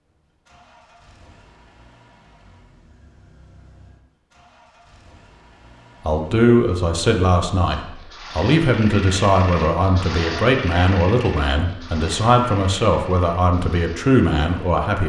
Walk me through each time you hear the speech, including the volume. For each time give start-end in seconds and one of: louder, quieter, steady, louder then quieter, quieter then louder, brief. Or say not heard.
6.0-15.0 steady.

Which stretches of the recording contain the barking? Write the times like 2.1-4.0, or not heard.
not heard.